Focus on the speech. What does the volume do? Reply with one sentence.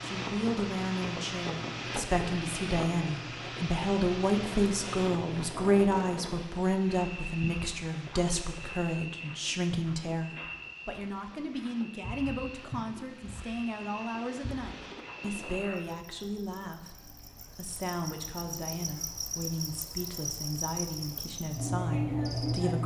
The volume of the speech goes down.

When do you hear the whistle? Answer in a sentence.
The whistle can't be heard in this clip.